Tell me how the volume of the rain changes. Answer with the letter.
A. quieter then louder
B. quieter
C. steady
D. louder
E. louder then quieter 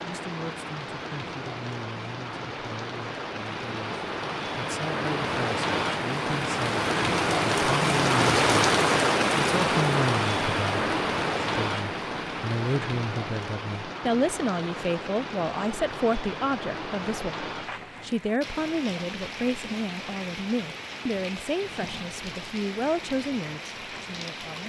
E.